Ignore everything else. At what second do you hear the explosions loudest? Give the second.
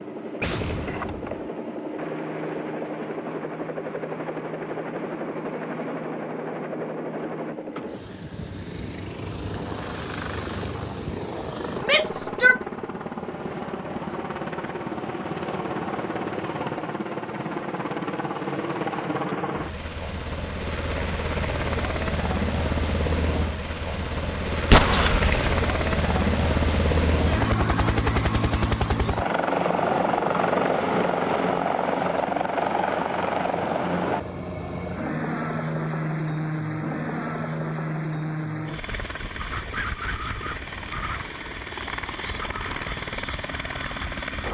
25 s.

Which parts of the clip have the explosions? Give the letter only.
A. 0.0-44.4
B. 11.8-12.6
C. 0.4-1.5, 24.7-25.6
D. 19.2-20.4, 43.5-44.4
C.